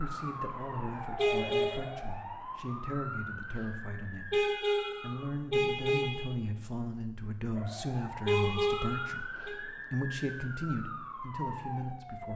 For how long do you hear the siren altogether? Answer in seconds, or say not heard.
10 s.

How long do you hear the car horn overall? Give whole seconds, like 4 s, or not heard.
4 s.